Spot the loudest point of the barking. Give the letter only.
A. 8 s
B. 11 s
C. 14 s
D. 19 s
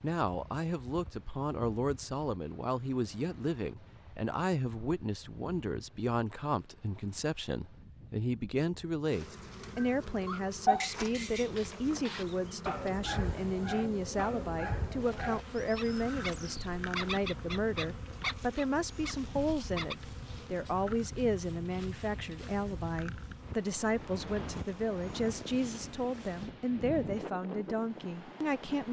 B.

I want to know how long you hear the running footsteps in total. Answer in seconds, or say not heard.
not heard.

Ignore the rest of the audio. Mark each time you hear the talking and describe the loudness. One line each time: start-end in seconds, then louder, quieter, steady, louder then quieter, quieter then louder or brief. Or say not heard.
0.0-28.8 steady.